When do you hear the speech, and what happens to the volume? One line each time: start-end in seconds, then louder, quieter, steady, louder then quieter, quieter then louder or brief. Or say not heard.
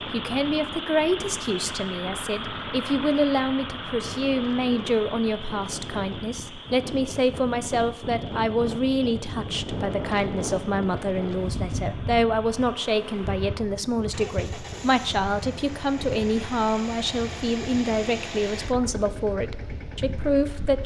0.1-20.8 steady.